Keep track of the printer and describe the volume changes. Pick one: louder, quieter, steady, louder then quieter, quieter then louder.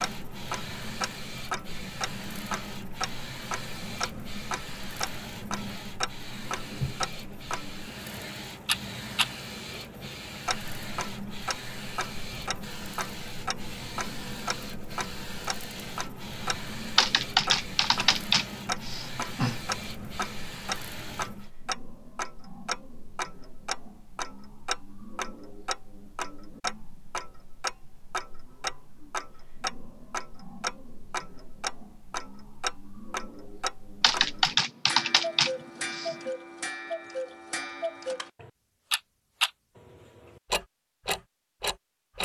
steady.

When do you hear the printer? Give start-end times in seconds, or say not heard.
0.0-21.5.